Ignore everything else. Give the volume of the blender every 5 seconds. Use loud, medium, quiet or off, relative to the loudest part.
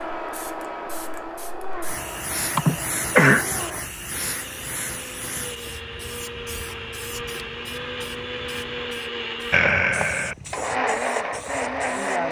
medium, medium, loud.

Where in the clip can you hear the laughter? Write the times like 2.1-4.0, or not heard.
2.5-3.5, 9.5-10.3.